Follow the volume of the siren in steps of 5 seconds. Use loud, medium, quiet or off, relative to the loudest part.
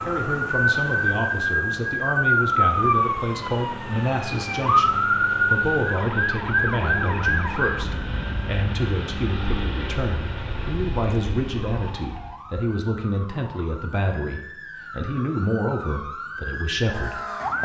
loud, loud, quiet, medium.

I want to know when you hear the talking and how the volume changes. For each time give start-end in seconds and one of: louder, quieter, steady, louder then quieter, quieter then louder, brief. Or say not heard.
0.0-17.6 steady.